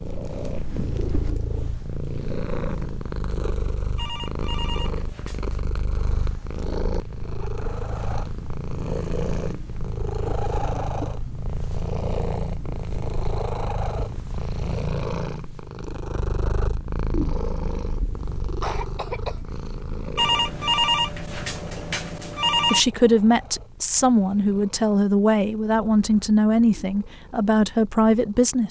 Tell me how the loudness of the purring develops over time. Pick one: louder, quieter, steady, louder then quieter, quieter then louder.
quieter.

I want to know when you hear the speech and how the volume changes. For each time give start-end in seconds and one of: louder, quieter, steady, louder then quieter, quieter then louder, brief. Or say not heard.
22.7-28.6 steady.